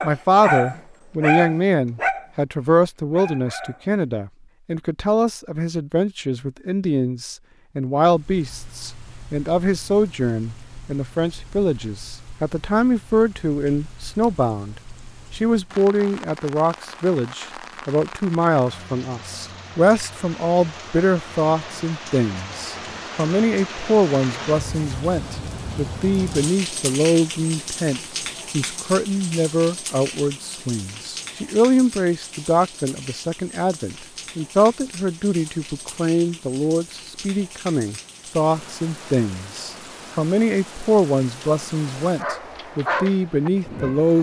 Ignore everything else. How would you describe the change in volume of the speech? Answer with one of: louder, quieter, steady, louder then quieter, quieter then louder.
steady.